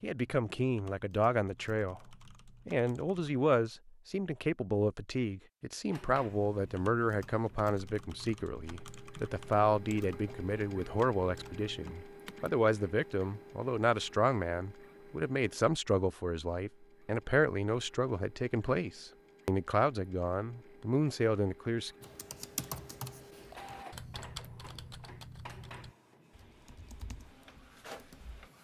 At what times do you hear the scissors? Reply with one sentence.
You can't hear the scissors here.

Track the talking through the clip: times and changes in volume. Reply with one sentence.
The talking can be heard from 0.0 to 21.9 s, at a steady volume.